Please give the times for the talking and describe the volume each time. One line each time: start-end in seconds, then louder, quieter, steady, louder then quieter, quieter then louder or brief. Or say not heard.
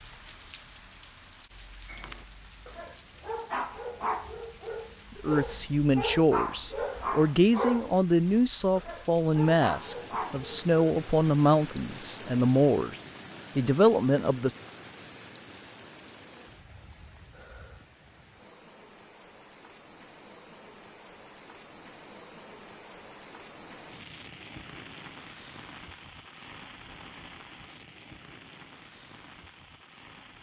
5.2-14.6 steady.